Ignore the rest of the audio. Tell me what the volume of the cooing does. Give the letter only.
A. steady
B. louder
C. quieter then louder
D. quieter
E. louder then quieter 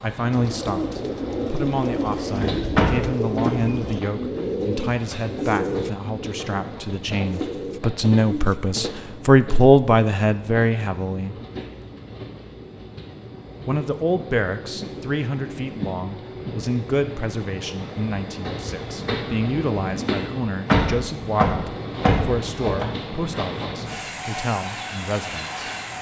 D.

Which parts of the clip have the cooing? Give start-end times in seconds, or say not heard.
0.1-8.7.